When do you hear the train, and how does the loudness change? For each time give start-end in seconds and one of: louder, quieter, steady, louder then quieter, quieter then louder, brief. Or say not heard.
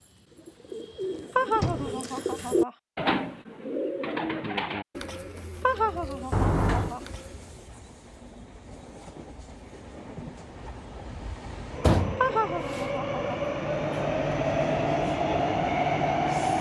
6.0-16.5 louder.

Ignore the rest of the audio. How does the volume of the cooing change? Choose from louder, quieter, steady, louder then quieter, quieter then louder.
louder then quieter.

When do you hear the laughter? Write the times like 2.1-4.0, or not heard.
1.4-2.7, 5.6-7.0, 12.2-13.2.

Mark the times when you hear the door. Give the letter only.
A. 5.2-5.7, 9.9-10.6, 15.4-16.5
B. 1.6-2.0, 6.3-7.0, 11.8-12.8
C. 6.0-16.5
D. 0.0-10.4
B.